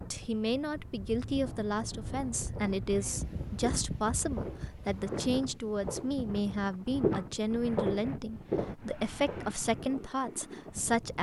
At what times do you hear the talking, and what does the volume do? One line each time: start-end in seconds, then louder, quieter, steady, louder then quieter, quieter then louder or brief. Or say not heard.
0.1-11.1 steady.